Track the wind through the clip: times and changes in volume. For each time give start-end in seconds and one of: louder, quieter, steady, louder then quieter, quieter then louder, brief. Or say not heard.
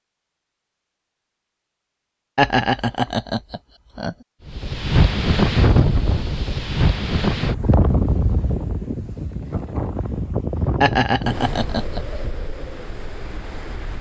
4.5-13.9 quieter.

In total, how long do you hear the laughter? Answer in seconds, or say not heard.
3 s.